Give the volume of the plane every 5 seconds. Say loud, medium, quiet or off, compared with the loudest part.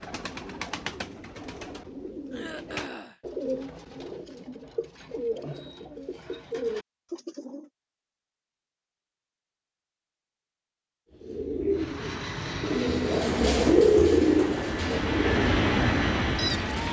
off, off, medium, loud.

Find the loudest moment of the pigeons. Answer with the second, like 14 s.
14 s.